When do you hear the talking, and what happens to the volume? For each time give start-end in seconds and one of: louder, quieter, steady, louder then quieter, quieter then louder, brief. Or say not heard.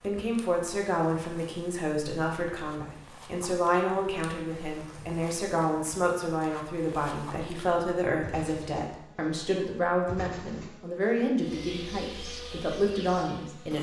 0.0-13.7 steady.